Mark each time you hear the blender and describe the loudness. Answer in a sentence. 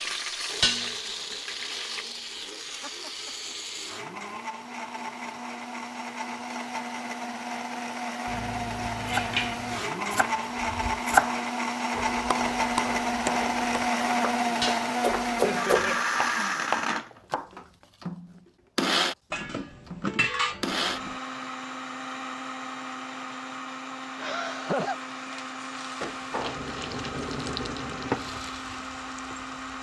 The blender can be heard from 0.0 to 29.7 s, getting louder then quieter.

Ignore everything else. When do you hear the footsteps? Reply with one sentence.
You can't hear the footsteps here.